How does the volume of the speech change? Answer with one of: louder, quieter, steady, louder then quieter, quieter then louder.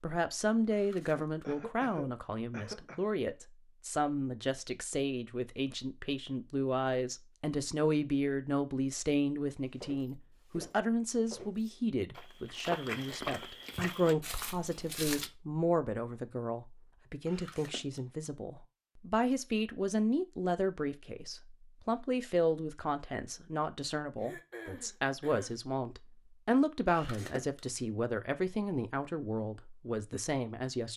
steady.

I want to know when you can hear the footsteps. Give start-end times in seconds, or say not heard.
9.6-15.3.